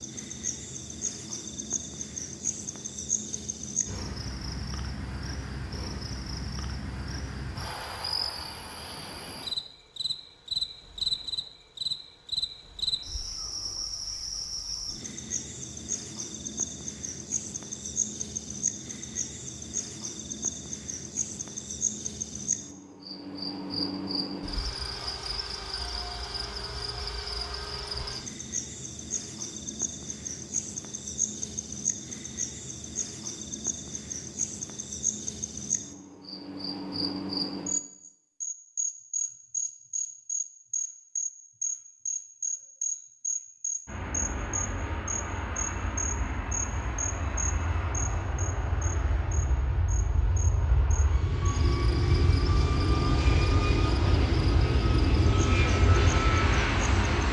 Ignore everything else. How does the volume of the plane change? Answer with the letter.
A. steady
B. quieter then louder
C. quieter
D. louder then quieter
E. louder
E.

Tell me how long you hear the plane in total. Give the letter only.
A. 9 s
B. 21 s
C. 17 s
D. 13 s
D.